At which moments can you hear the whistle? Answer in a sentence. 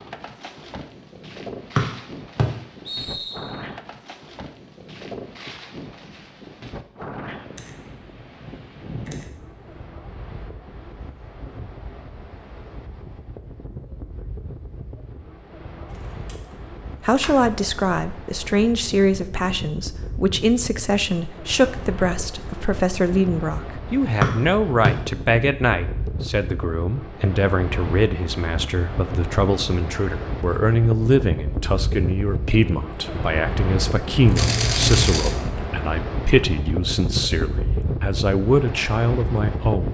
You can hear the whistle from 1.8 to 3.5 s and from 24.2 to 24.9 s.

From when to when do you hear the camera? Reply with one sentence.
The camera can be heard from 7.5 to 9.8 s, from 15.9 to 17.5 s and from 34.2 to 35.4 s.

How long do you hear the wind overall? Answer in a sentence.
The wind can be heard for 40 seconds in total.